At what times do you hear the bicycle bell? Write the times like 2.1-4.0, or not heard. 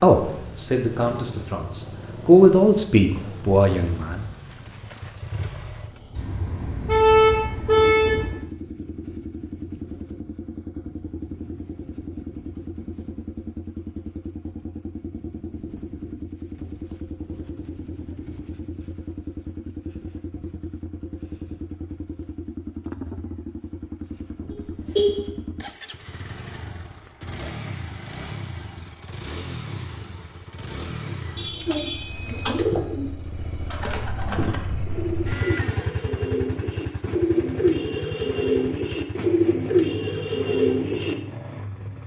31.5-32.6.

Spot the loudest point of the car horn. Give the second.
7 s.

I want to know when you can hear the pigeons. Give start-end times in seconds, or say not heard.
31.6-41.1.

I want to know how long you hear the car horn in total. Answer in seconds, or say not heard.
4 s.